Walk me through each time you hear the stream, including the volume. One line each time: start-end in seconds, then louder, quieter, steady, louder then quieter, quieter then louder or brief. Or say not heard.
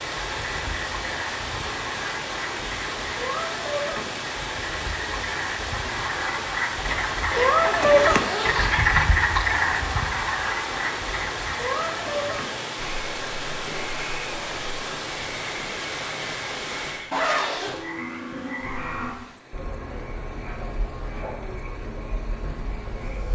0.0-23.3 quieter.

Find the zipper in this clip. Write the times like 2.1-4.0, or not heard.
6.8-8.7, 17.1-17.8.